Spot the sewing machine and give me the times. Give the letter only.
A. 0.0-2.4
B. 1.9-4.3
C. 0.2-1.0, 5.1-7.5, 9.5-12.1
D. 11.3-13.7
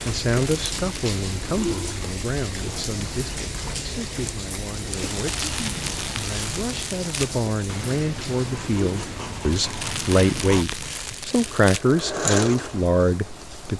D.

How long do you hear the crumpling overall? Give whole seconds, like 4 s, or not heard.
6 s.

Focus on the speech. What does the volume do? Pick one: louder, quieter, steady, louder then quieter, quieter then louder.
quieter then louder.